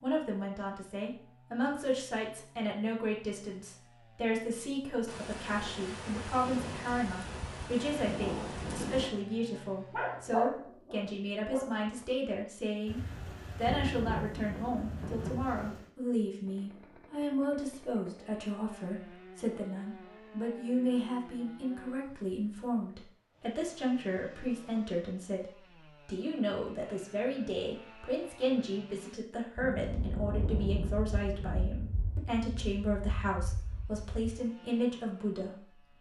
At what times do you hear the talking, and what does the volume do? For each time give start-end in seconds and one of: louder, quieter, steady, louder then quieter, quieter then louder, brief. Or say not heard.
0.0-35.8 steady.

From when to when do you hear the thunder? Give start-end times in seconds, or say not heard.
5.0-9.1, 12.8-15.8, 29.6-34.4.